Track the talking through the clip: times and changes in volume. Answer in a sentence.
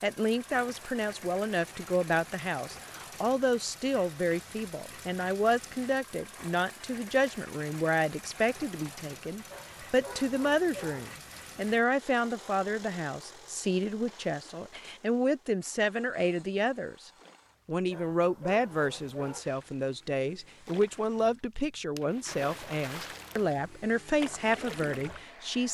You can hear the talking from 0.0 to 25.6 s, at a steady volume.